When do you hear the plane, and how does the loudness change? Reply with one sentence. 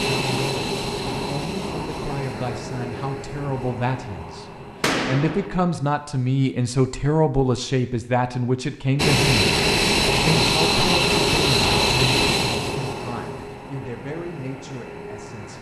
The plane can be heard from 0.0 to 5.7 s, getting quieter; and from 8.9 to 15.5 s, getting quieter.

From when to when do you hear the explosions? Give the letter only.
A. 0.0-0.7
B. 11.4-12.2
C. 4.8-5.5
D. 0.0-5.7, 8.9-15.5
C.